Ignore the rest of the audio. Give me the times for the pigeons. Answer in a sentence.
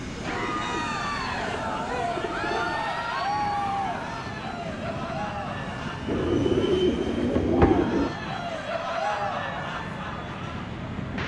You can hear the pigeons from 0.1 to 2.9 s and from 6.0 to 8.2 s.